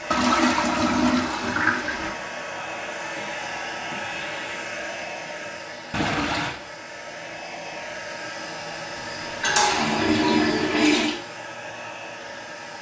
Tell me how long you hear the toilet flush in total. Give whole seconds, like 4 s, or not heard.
5 s.